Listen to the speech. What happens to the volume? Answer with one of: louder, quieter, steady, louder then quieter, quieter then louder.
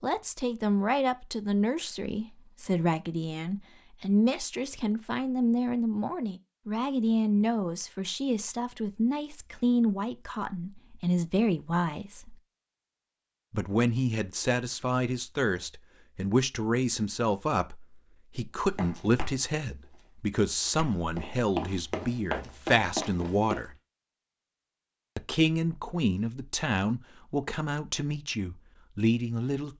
steady.